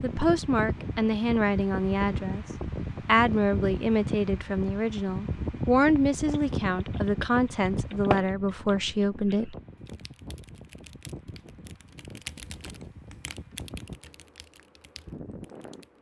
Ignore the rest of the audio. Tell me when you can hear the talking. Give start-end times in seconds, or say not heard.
0.0-2.5, 3.0-9.6.